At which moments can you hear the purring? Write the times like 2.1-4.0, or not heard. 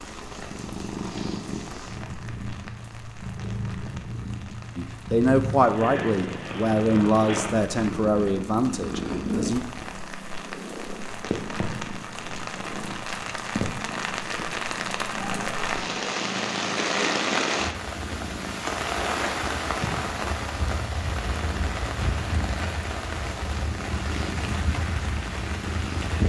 0.0-26.2.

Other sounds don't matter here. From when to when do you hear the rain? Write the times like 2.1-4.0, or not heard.
0.0-26.2.